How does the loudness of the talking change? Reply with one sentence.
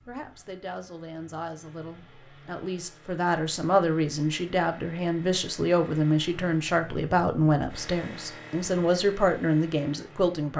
The loudness of the talking goes up.